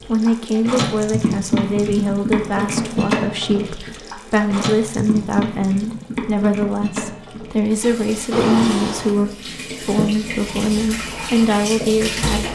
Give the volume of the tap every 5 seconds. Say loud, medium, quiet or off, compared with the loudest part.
loud, medium, loud.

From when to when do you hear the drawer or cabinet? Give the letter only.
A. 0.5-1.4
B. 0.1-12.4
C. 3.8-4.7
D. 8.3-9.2
D.